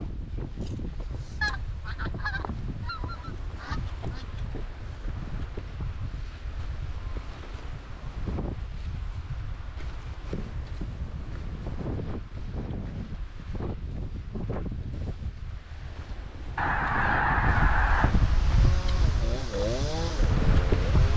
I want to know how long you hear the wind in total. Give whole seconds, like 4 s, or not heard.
21 s.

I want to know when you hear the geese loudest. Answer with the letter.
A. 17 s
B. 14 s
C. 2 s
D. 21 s
A.